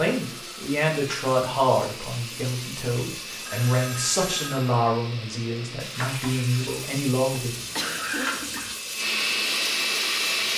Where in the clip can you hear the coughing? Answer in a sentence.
You can hear the coughing from 7.5 to 8.8 s.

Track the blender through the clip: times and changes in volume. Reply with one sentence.
The blender can be heard from 0.0 to 10.5 s, getting louder.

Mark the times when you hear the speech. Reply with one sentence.
The speech can be heard from 0.0 to 7.5 s.